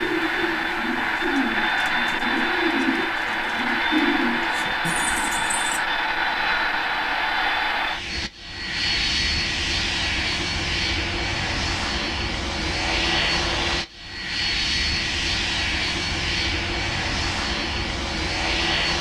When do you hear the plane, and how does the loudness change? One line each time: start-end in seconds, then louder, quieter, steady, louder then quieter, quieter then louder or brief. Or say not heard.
0.0-18.9 steady.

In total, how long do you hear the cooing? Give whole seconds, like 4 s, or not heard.
6 s.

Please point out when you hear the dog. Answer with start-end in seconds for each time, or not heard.
not heard.